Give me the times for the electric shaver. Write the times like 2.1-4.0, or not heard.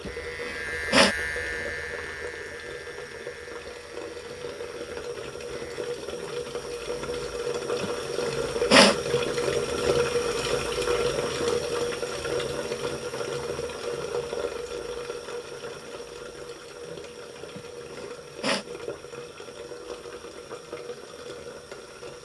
0.0-5.8.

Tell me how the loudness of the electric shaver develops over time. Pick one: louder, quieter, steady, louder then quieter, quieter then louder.
quieter.